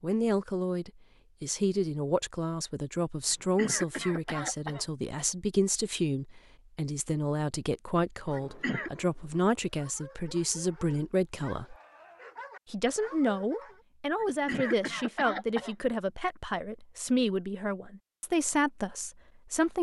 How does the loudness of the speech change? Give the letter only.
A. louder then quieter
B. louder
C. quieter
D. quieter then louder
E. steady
E.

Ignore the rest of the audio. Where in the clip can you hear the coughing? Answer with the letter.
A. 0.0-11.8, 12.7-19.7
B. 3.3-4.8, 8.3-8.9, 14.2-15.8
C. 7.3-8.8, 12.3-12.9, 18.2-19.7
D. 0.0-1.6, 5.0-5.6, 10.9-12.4
B.